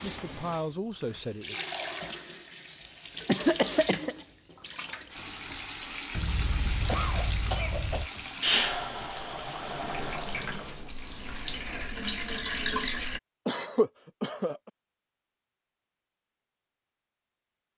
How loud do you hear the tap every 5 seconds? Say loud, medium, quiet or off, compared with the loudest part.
medium, loud, loud, off.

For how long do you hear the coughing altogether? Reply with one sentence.
The coughing can be heard for 4 seconds in total.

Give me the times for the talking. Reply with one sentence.
You can hear the talking from 0.0 to 1.6 s.